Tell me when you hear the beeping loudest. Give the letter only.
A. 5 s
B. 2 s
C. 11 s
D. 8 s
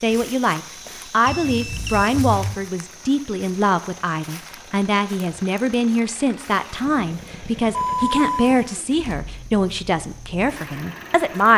D.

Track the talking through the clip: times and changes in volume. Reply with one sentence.
You can hear the talking from 0.0 to 11.5 s, at a steady volume.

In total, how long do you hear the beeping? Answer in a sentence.
You can hear the beeping for 2 seconds altogether.